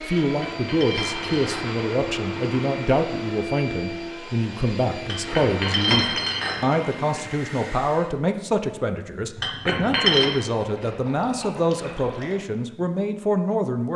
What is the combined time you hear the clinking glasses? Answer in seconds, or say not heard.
4 s.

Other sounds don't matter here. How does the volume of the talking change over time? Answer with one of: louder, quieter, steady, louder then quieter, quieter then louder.
steady.